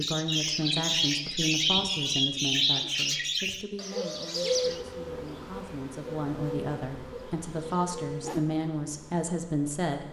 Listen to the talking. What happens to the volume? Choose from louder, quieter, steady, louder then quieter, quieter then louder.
quieter then louder.